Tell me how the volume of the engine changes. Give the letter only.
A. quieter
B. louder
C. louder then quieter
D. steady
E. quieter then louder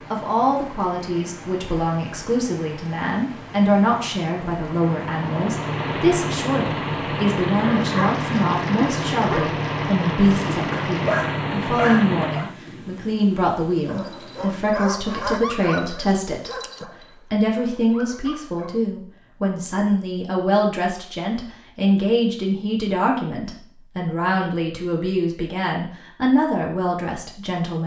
B.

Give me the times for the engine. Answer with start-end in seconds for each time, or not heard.
0.0-12.6.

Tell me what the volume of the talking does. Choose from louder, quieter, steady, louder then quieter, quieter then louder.
steady.